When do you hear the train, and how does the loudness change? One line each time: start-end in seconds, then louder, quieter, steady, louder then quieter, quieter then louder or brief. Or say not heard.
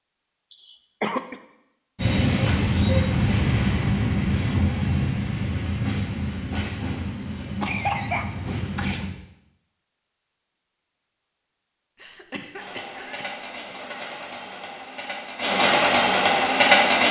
1.9-9.1 quieter
12.6-17.0 louder.